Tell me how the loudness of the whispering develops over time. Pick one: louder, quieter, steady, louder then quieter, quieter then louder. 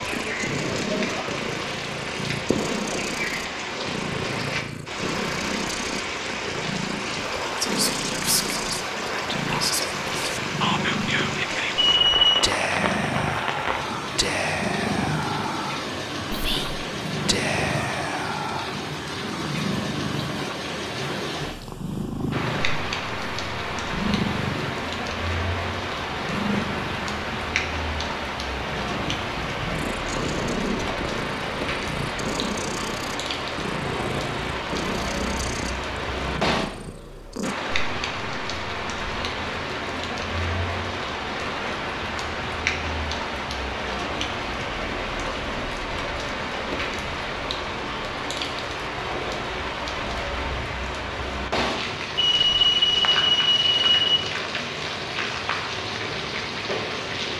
steady.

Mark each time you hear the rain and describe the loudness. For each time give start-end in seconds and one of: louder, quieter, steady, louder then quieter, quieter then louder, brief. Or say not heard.
0.0-57.3 steady.